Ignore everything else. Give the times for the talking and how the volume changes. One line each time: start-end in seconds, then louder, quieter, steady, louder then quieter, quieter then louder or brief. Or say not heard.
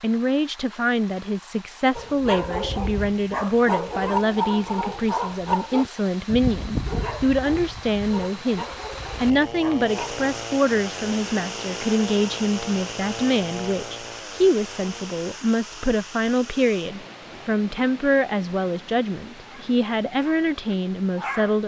0.0-21.6 steady.